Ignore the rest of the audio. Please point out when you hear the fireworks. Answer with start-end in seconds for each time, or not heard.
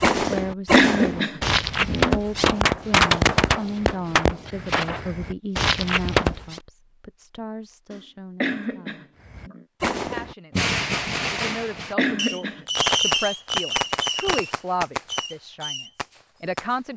0.0-6.6, 9.2-16.8.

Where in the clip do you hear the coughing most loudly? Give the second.
1 s.